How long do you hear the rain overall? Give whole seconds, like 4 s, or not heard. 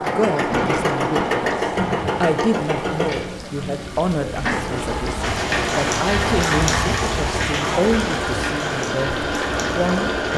10 s.